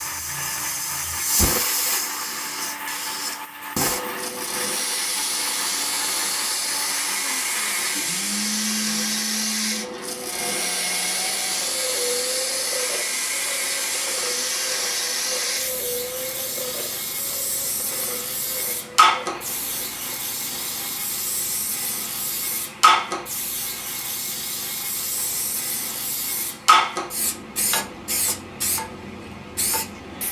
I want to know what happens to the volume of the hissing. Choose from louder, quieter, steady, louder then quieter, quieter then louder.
steady.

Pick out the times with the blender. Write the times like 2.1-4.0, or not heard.
0.0-30.2.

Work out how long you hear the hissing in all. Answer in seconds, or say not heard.
30 s.